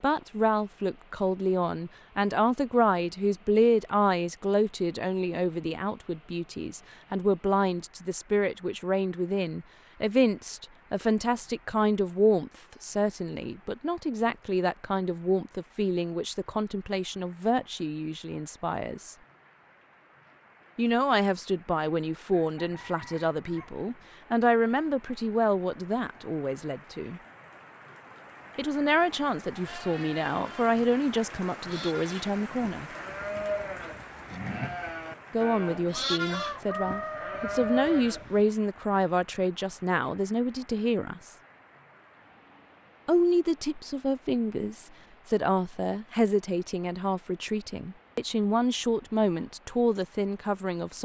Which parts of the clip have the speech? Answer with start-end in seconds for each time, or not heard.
0.0-19.1, 20.8-27.2, 28.6-32.9, 35.3-41.4, 43.0-51.0.